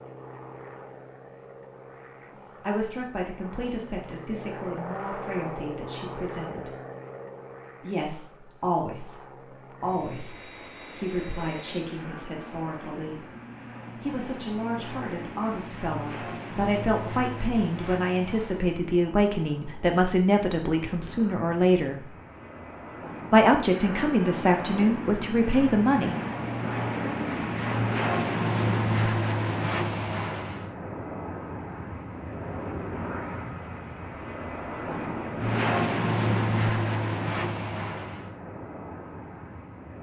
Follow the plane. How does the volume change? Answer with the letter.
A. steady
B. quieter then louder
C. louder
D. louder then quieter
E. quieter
C.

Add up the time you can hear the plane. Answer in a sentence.
You can hear the plane for 40 seconds altogether.